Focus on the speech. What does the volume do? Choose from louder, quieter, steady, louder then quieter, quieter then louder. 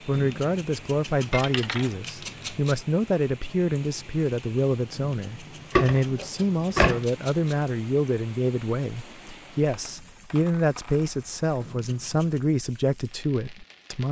steady.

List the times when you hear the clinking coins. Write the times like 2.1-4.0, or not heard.
1.3-1.9, 5.7-7.0, 9.7-11.7.